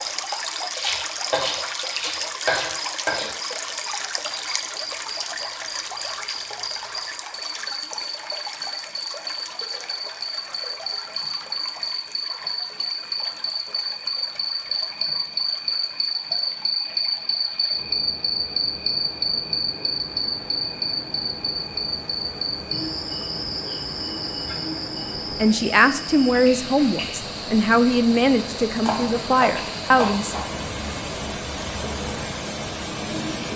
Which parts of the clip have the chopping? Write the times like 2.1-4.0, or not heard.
0.7-3.3, 28.9-30.6.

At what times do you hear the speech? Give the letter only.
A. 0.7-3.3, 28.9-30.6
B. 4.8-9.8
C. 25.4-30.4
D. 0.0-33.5
C.